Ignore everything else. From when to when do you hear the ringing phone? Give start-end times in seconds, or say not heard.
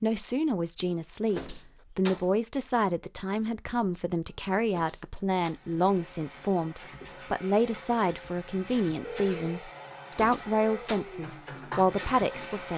9.0-9.7.